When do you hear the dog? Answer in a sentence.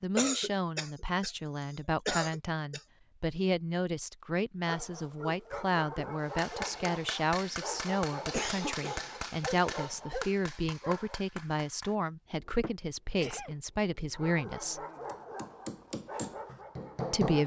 The dog can be heard from 4.7 to 11.2 s and from 14.1 to 17.4 s.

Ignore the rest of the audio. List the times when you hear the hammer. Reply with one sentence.
The hammer can be heard from 6.2 to 17.4 s.